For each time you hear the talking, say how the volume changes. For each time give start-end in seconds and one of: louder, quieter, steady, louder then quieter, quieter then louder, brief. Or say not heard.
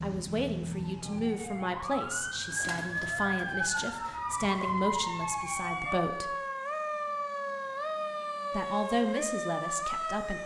0.0-6.3 steady
8.5-10.4 brief.